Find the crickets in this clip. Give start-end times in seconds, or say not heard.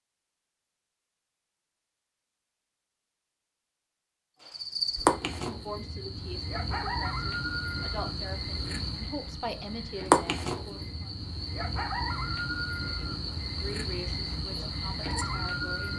4.4-15.9.